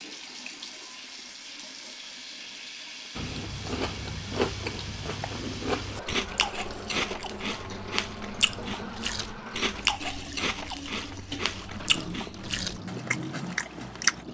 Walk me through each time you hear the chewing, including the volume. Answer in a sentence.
The chewing can be heard from 3.1 to 14.2 s, at a steady volume.